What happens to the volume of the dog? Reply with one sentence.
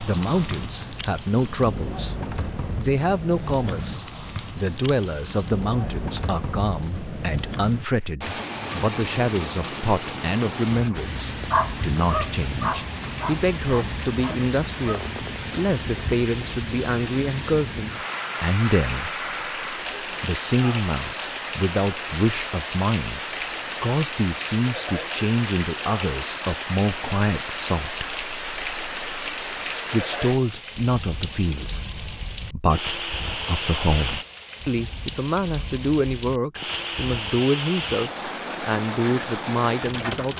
The volume of the dog goes down.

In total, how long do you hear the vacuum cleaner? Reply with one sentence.
You can't hear the vacuum cleaner here.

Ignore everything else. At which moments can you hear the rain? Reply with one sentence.
You can hear the rain from 0.0 to 40.3 s.